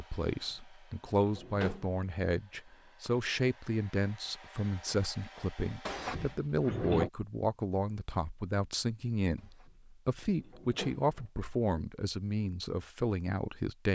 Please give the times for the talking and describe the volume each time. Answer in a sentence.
The talking can be heard from 0.0 to 13.9 s, at a steady volume.